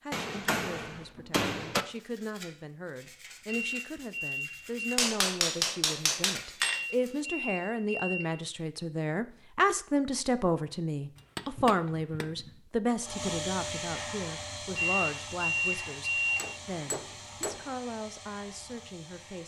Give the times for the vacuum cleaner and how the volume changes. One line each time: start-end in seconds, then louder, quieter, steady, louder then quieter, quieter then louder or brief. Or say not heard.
12.9-19.4 quieter.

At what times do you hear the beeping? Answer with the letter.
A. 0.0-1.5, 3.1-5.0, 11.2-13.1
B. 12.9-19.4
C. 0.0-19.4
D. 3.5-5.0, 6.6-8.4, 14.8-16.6
D.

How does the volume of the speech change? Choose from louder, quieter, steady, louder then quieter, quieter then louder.
louder then quieter.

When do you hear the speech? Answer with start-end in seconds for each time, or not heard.
0.0-19.4.